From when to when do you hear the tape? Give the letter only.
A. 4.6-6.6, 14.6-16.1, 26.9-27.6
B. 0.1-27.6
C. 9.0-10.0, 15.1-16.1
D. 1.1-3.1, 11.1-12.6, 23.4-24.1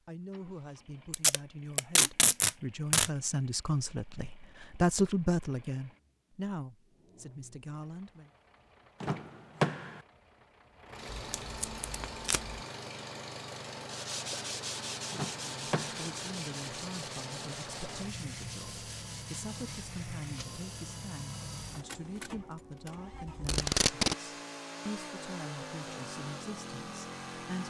D.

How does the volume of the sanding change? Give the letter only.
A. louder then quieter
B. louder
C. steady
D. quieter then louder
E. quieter
E.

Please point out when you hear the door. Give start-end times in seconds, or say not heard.
9.0-10.0, 15.1-16.1.